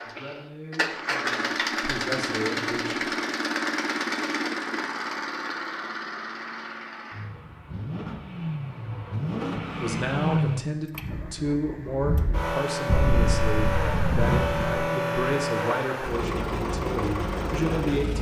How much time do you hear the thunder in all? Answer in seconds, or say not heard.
2 s.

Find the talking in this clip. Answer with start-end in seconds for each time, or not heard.
0.0-3.0, 9.8-18.1.